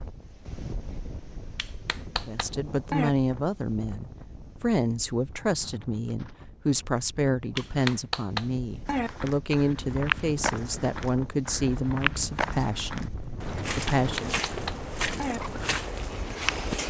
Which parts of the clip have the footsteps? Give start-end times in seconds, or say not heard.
8.8-16.8.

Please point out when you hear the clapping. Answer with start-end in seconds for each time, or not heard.
1.6-3.1, 7.5-9.1, 13.8-15.4.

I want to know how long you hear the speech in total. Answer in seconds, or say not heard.
12 s.